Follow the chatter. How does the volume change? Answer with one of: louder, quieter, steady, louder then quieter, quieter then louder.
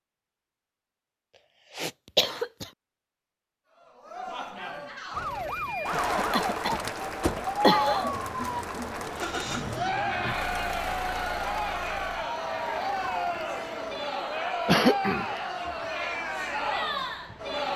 steady.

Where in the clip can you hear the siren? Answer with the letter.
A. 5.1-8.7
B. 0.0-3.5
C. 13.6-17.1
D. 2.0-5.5
A.